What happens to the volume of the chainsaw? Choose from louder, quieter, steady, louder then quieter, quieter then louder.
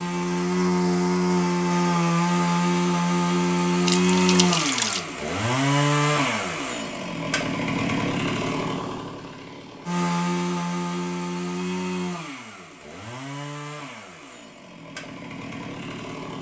quieter.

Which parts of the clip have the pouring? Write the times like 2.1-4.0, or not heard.
3.9-5.0.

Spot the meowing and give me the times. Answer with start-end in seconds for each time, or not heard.
not heard.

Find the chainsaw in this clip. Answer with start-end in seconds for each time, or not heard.
0.0-16.3.